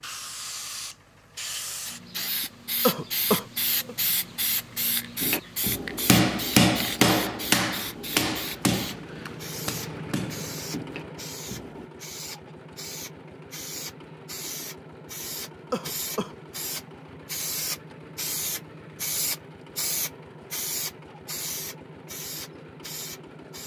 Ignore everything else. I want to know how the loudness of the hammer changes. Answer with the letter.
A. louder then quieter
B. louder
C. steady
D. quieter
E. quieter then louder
D.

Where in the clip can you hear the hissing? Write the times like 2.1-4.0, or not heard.
0.0-23.6.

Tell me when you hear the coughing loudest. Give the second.
3 s.